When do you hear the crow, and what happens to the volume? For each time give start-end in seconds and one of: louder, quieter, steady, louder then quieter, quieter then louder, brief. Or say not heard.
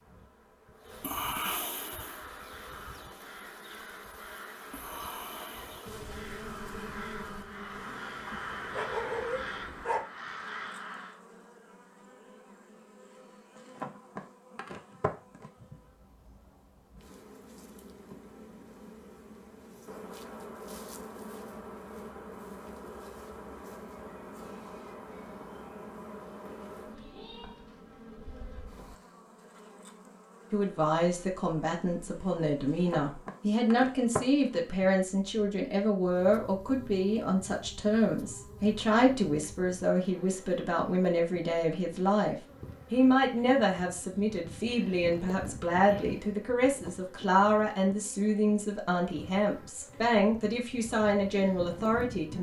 1.7-11.2 louder.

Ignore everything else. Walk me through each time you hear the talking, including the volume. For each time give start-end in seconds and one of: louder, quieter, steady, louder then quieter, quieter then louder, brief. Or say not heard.
30.5-52.3 steady.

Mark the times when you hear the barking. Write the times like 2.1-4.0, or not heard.
8.3-10.1.